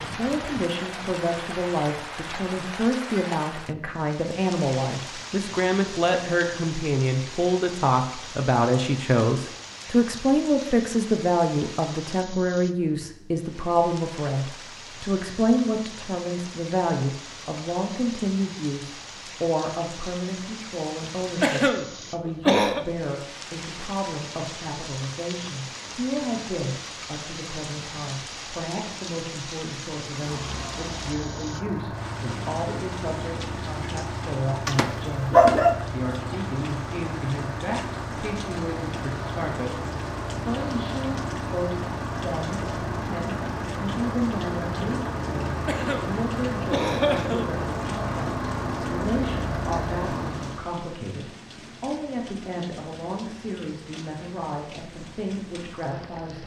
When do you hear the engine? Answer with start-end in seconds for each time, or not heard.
30.0-50.7.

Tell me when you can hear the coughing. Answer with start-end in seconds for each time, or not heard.
21.4-22.9, 45.6-47.6.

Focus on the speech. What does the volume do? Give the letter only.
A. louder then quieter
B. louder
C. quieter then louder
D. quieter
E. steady
D.